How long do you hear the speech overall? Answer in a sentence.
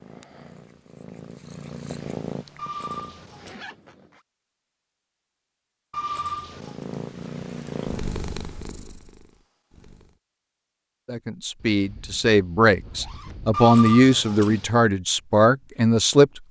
The speech can be heard for 5 seconds in total.